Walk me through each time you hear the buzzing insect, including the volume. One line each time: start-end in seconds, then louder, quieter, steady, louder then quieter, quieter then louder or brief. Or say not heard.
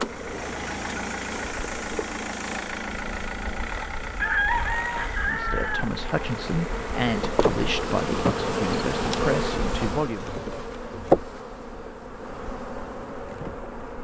0.0-13.9 louder.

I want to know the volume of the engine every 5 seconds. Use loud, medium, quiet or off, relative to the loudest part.
loud, medium, off.